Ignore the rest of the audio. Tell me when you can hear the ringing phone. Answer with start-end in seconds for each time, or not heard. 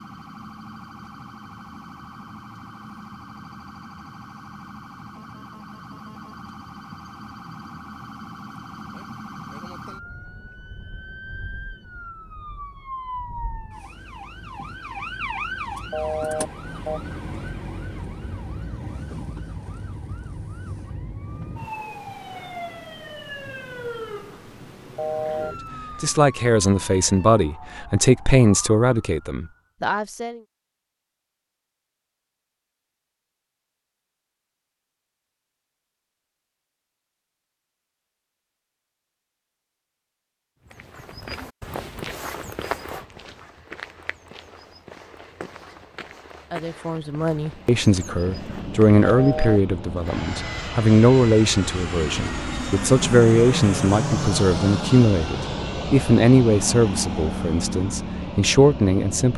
15.9-17.0, 24.9-25.6, 49.0-49.6.